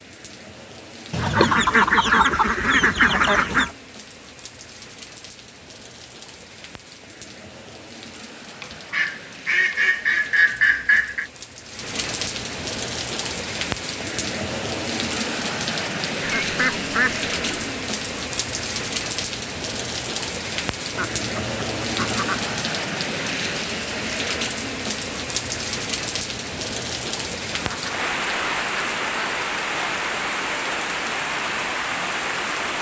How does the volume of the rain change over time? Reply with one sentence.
The loudness of the rain goes up.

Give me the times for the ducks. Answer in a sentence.
The ducks can be heard from 1.1 to 3.7 s, from 8.6 to 11.3 s, from 16.2 to 17.7 s, from 20.9 to 22.6 s and from 27.5 to 29.4 s.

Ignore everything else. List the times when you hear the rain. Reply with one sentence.
The rain can be heard from 0.0 to 32.7 s.